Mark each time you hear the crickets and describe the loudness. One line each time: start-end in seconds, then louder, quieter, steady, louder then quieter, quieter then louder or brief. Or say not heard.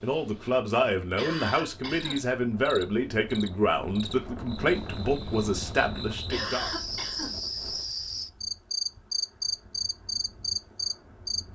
1.9-11.4 louder.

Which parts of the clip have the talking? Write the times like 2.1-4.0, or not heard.
0.0-6.7.